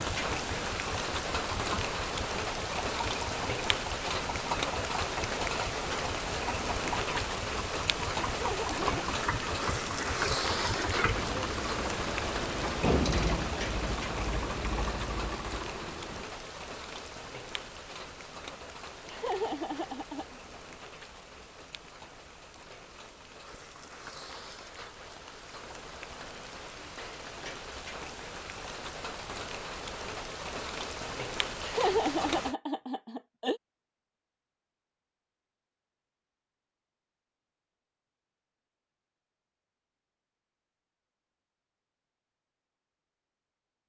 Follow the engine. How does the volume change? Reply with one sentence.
The loudness of the engine goes up.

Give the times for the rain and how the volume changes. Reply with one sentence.
The rain can be heard from 0.0 to 32.5 s, getting quieter then louder.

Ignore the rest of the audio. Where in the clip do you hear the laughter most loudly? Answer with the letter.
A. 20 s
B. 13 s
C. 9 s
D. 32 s
D.